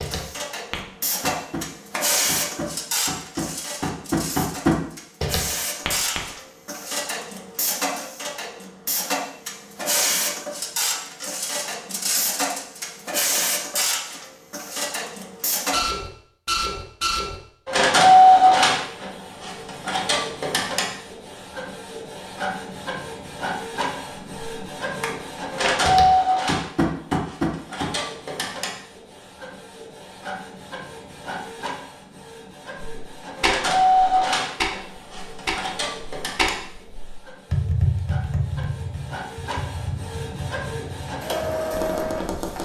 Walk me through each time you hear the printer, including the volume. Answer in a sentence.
The printer can be heard from 0.0 to 42.6 s, getting louder then quieter.